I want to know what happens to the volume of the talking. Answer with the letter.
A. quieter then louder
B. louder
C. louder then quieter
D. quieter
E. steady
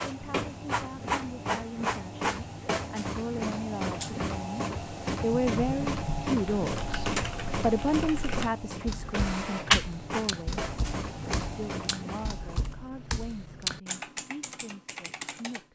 C.